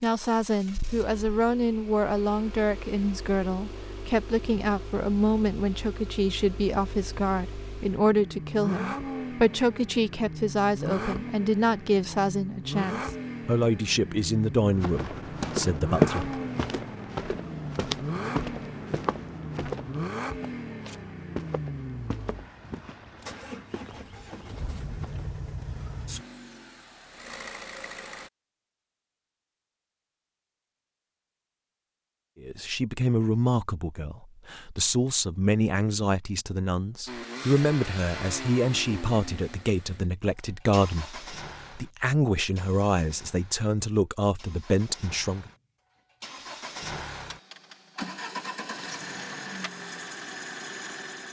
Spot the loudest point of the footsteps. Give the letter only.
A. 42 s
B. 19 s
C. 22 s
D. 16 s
D.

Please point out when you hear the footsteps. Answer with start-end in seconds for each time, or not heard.
14.8-25.8.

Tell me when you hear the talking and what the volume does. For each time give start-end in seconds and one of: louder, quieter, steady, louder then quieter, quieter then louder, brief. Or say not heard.
0.0-16.4 steady
32.4-45.5 steady.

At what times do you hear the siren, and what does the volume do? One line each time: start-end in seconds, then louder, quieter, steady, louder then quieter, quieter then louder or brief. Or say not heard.
not heard.